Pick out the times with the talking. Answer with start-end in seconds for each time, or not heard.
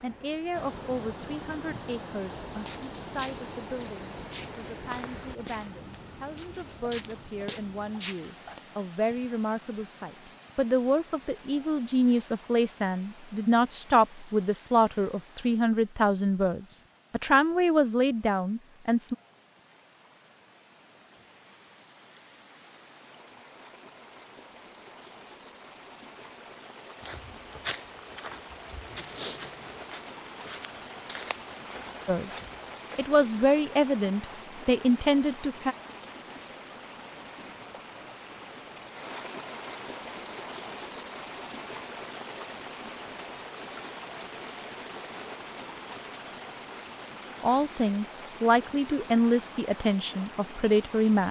0.0-19.1, 32.0-35.8, 47.4-51.2.